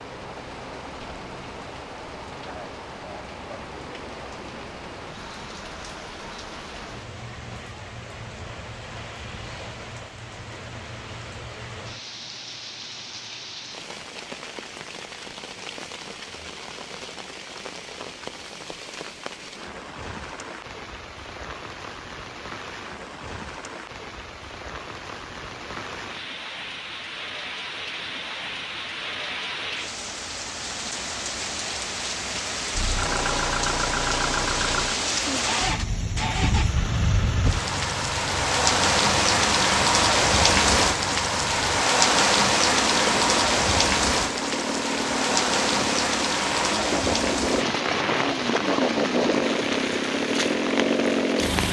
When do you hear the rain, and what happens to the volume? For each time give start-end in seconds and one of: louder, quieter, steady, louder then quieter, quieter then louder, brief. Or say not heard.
0.0-51.6 louder.